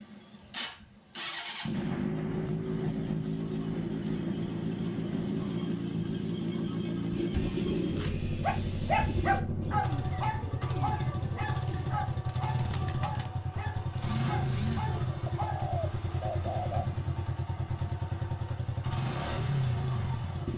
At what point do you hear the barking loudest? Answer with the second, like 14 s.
9 s.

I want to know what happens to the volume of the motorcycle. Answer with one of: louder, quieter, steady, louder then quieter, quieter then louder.
steady.